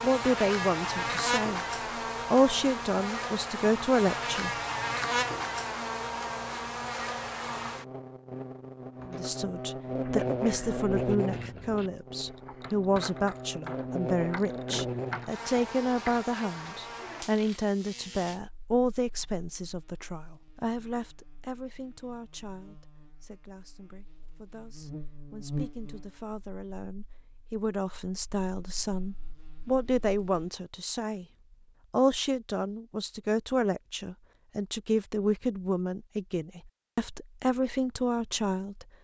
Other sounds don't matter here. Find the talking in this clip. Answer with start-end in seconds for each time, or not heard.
0.0-1.6, 2.3-4.5, 9.1-31.2, 31.9-38.9.